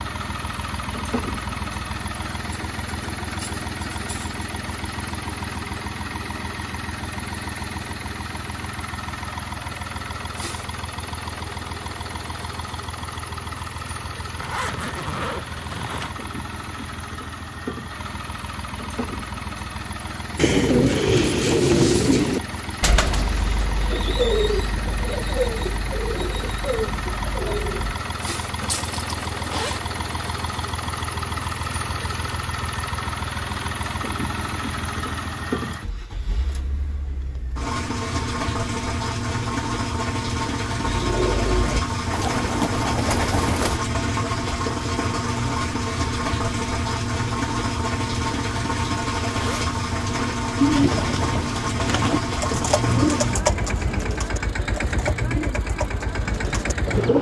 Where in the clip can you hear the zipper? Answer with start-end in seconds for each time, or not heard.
14.3-16.1, 28.6-29.8, 49.2-49.7.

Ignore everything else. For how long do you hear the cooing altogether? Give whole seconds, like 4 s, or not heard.
17 s.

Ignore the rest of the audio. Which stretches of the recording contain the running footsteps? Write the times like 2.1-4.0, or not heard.
not heard.